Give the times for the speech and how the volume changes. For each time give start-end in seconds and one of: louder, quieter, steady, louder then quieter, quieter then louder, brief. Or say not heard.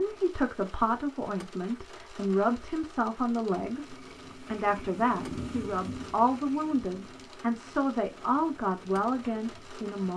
0.0-10.1 steady.